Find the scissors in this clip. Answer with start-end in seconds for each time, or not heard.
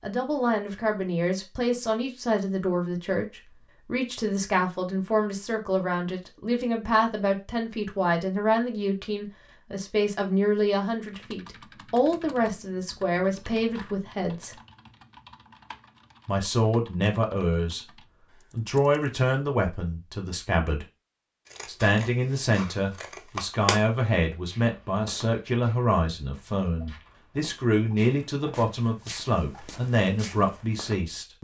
21.5-23.8.